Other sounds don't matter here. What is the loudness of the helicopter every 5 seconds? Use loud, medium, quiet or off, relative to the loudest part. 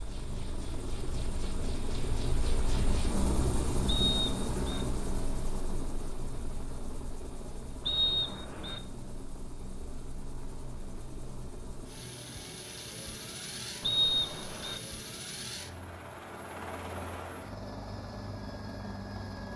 loud, medium, medium, medium.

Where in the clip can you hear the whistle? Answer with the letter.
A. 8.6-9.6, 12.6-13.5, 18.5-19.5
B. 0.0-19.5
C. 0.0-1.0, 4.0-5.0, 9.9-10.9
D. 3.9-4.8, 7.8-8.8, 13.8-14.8
D.